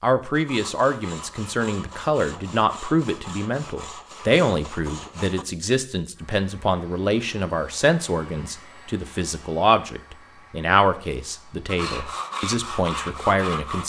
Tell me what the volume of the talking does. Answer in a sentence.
The volume of the talking stays about the same.